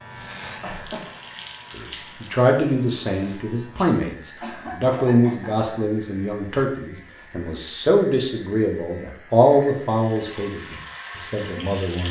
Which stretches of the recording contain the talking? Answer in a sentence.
You can hear the talking from 1.8 to 12.0 s.